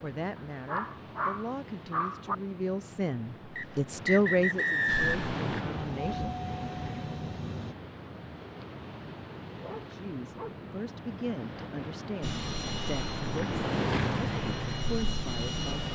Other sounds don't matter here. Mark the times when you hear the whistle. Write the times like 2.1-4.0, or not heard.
3.5-5.3.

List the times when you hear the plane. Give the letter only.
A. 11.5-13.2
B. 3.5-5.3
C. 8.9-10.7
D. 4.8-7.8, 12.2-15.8
D.